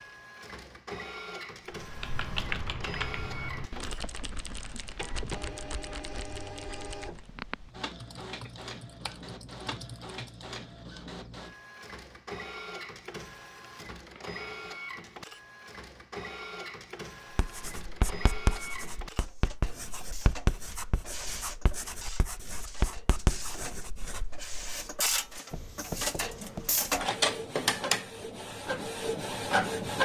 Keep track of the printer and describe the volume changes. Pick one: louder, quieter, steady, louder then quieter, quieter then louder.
louder.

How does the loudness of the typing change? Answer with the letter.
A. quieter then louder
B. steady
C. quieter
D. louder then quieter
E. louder
C.